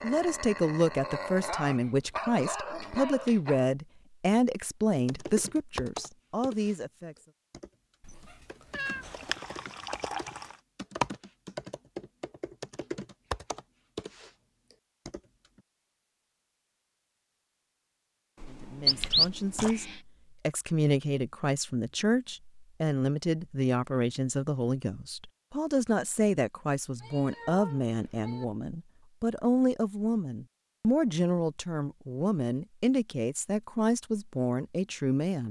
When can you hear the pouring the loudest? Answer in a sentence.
The loudest moment of the pouring is at 19 seconds.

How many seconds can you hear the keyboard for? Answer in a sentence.
The keyboard can be heard for 11 seconds in total.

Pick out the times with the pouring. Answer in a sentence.
You can hear the pouring from 9.1 to 10.6 s and from 18.9 to 19.8 s.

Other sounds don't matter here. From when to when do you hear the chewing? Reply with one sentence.
The chewing can't be heard in this clip.